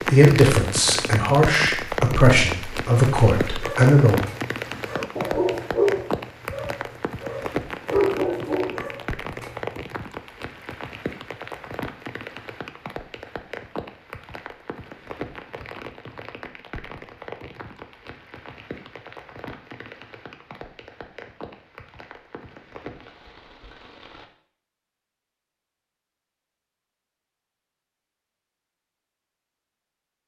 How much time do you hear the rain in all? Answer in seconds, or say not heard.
24 s.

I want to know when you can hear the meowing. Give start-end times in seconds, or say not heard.
not heard.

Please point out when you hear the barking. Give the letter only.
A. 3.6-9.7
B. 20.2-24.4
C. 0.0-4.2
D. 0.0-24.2
A.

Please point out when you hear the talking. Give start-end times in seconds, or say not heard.
0.0-4.2.